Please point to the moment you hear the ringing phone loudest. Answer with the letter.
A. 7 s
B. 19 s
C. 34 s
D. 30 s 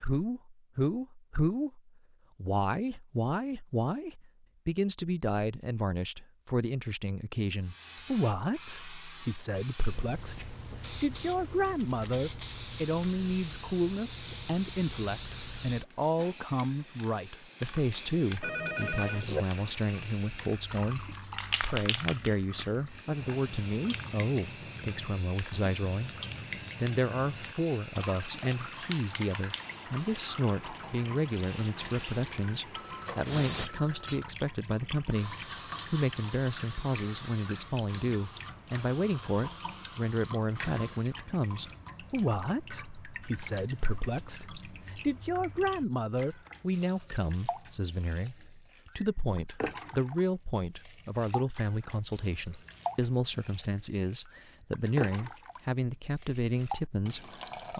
B.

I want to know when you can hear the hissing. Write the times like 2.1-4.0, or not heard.
7.6-41.2.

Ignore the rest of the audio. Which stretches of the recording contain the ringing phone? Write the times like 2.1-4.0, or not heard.
18.4-19.2, 32.8-34.2.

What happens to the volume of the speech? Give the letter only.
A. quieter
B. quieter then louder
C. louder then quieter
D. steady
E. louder
D.